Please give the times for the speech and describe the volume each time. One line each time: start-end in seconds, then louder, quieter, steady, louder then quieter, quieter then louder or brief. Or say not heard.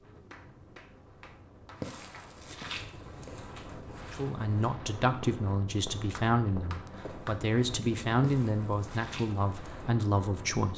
4.1-10.7 steady.